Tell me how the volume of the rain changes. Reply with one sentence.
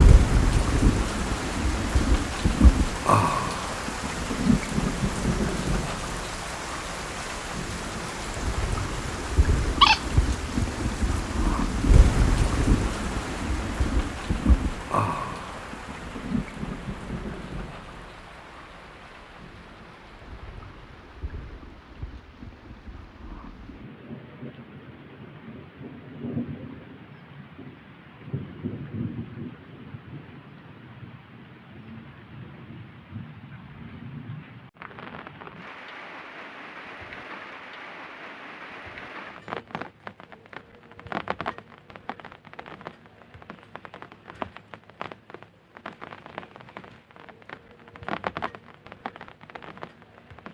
The loudness of the rain goes down.